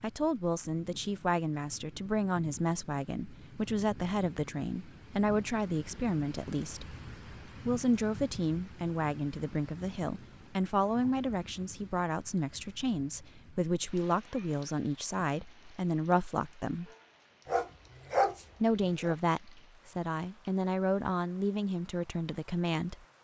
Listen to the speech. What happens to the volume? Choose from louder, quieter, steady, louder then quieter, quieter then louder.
steady.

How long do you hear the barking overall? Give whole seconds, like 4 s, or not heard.
2 s.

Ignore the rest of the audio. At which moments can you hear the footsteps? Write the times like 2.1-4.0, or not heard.
not heard.